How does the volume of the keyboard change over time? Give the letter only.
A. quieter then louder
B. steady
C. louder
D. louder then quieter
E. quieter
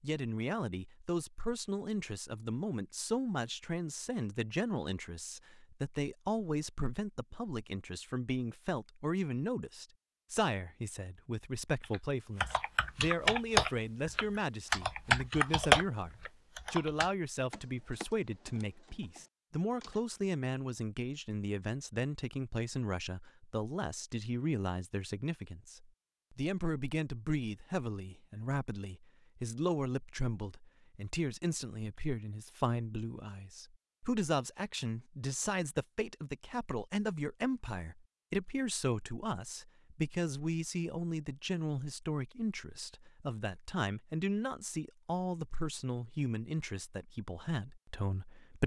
E.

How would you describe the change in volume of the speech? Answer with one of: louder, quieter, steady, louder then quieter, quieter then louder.
steady.